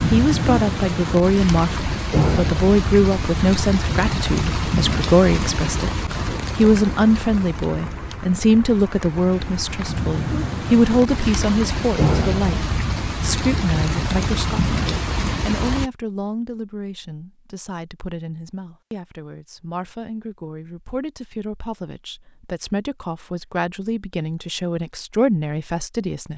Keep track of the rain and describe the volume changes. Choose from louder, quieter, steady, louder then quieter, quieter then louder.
quieter then louder.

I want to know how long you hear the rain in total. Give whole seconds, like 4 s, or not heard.
16 s.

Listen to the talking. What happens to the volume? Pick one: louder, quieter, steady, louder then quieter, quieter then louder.
quieter then louder.